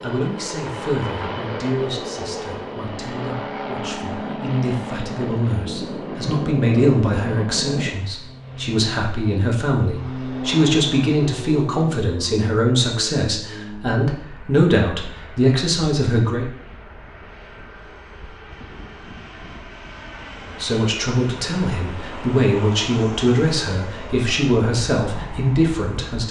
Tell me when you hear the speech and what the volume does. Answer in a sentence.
The speech can be heard from 0.0 to 16.4 s, getting louder; and from 20.4 to 26.2 s, at a steady volume.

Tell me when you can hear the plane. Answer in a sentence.
You can hear the plane from 0.0 to 26.2 s.